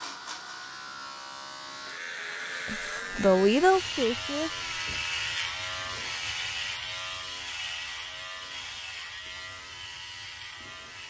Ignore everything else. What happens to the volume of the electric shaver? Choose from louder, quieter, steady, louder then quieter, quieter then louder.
louder then quieter.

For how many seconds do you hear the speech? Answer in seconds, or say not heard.
2 s.